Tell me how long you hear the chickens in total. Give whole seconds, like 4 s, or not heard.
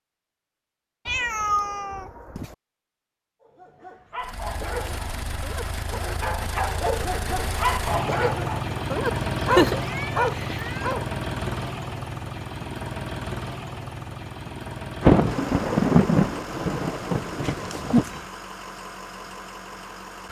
not heard.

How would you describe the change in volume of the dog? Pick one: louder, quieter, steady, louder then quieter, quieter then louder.
louder.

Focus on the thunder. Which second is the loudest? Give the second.
15 s.